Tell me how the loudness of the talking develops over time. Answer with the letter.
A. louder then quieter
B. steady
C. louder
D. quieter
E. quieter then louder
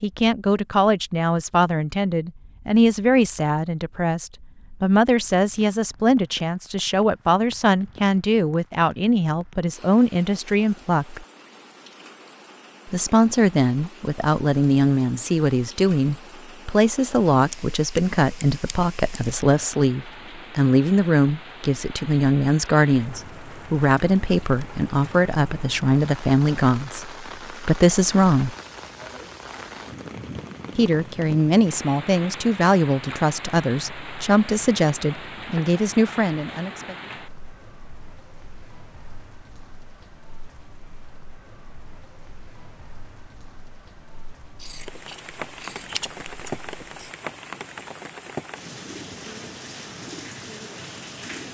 B.